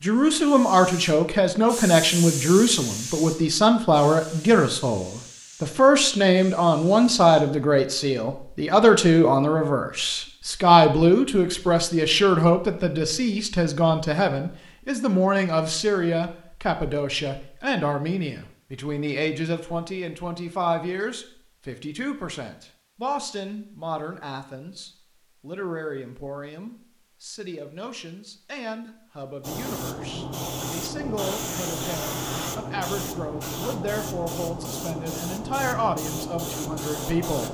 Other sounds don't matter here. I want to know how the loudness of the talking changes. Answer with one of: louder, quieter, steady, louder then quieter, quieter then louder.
quieter.